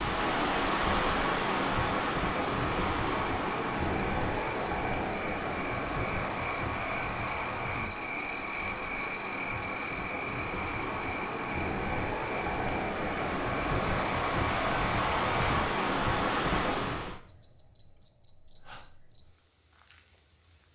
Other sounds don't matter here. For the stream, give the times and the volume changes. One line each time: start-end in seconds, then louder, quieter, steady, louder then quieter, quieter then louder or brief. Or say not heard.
0.0-17.2 quieter then louder.